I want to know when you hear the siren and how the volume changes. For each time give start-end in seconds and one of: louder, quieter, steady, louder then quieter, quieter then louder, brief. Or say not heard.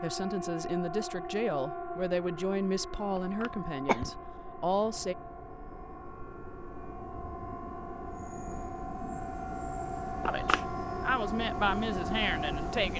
0.0-12.9 quieter then louder.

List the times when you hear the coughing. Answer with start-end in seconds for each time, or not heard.
3.1-4.1, 10.2-10.6.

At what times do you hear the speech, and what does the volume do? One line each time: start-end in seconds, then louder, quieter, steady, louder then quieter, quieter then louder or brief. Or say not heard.
0.0-5.2 steady
10.2-12.9 brief.